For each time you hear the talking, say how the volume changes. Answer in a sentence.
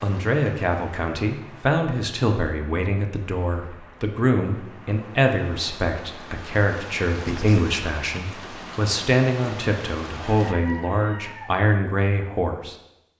You can hear the talking from 0.0 to 12.8 s, at a steady volume.